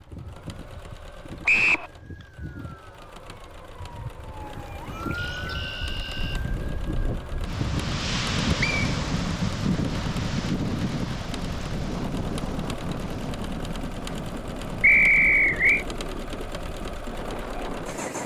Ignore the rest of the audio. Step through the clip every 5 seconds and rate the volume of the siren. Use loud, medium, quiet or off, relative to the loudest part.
medium, loud, off, off.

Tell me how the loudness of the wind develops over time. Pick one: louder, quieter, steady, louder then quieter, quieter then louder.
louder then quieter.